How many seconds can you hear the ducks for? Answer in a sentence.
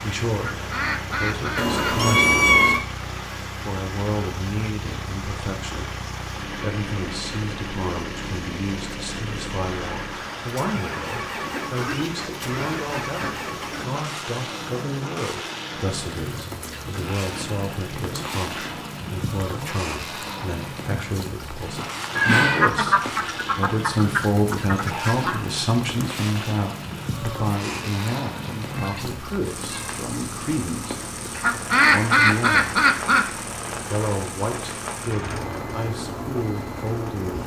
You can hear the ducks for 9 seconds altogether.